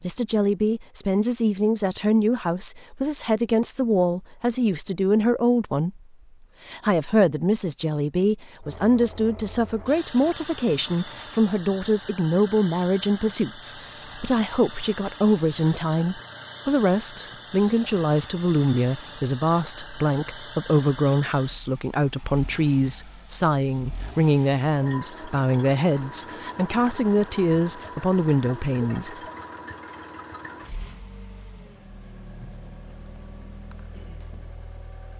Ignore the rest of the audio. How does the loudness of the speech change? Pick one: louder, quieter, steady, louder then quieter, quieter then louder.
steady.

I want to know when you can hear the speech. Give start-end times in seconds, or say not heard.
0.0-6.0, 6.7-29.2.